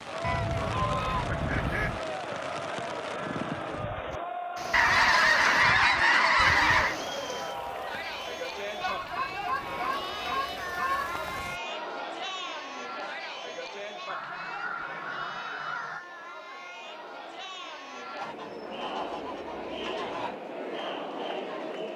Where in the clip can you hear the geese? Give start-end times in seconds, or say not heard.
0.2-2.0, 4.7-7.0, 8.8-11.1, 14.1-16.1, 18.2-20.4.